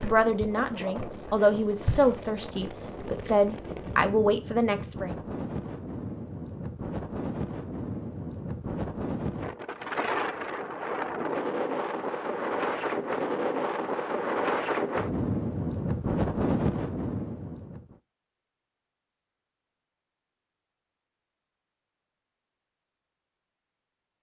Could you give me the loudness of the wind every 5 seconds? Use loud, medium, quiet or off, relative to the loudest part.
medium, medium, loud, loud, off.